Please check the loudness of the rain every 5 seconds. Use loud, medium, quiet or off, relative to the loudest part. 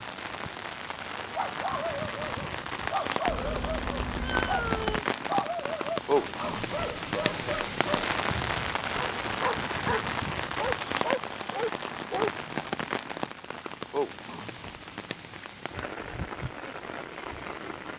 loud, loud, loud, medium.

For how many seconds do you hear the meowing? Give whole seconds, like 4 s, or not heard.
2 s.